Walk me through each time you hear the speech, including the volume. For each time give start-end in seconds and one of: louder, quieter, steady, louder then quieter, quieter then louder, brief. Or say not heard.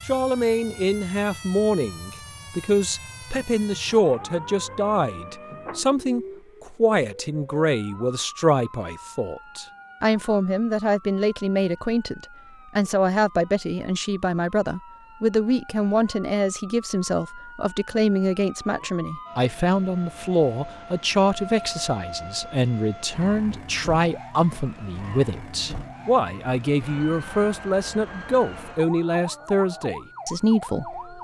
0.1-31.1 steady.